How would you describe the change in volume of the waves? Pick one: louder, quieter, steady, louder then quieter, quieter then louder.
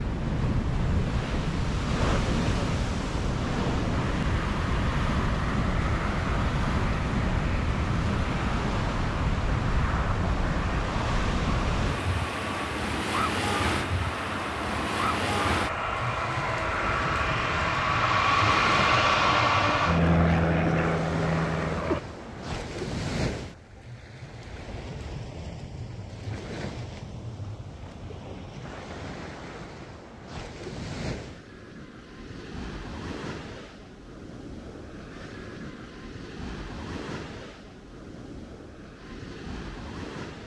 quieter.